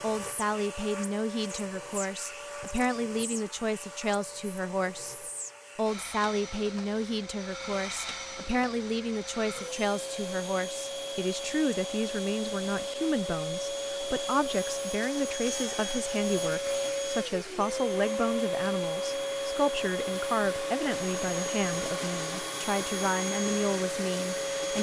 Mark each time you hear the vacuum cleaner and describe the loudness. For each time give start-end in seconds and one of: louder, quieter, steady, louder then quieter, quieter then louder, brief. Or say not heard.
0.0-24.7 louder.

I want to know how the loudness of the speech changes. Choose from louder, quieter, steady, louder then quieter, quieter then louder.
steady.